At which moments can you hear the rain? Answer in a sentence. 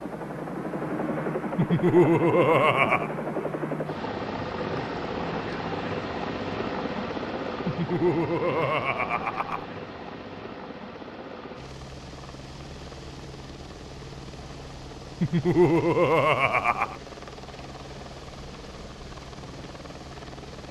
The rain can't be heard in this clip.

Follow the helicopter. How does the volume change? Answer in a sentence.
The volume of the helicopter goes down.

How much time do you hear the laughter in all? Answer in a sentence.
The laughter can be heard for 5 seconds in total.